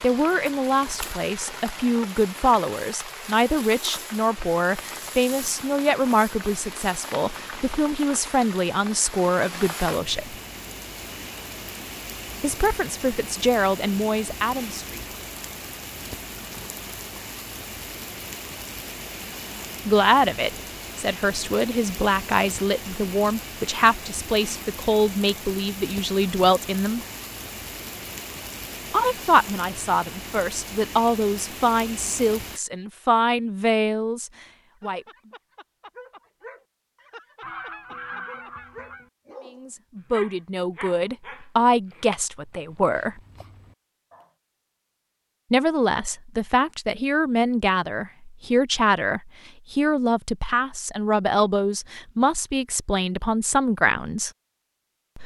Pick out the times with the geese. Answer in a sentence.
You can hear the geese from 37.4 to 39.1 s.